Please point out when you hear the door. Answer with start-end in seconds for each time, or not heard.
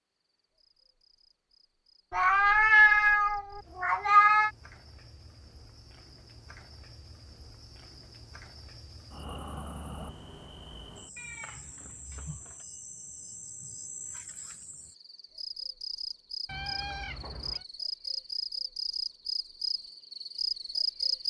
not heard.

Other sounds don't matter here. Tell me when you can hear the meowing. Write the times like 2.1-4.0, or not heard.
2.1-4.5, 11.2-12.6, 16.4-17.6.